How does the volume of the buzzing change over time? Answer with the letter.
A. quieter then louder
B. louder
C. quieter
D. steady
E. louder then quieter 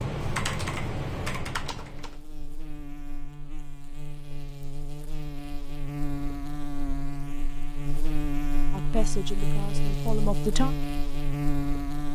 B.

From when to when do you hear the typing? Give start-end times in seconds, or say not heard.
0.0-2.2.